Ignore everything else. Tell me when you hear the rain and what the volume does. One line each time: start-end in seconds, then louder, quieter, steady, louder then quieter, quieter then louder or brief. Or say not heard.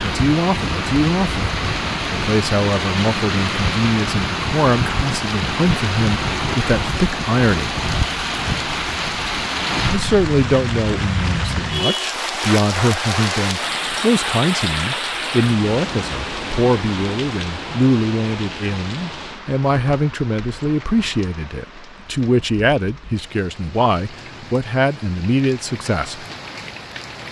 0.0-27.2 quieter.